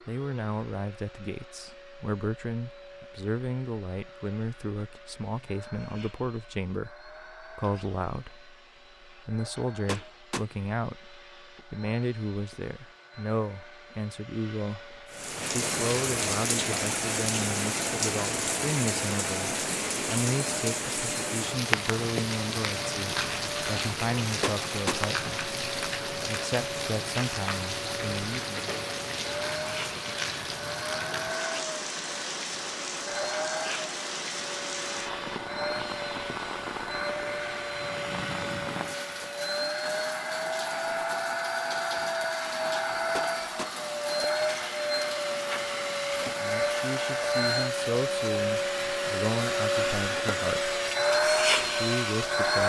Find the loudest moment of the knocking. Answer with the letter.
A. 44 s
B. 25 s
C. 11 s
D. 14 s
B.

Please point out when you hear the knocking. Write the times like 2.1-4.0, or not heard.
9.8-10.4, 24.4-25.0, 43.1-43.8.